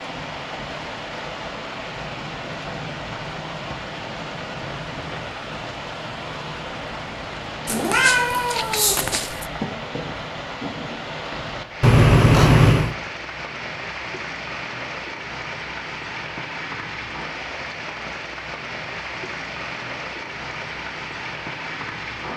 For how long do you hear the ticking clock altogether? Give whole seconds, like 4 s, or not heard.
not heard.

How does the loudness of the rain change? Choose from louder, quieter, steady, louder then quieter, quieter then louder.
steady.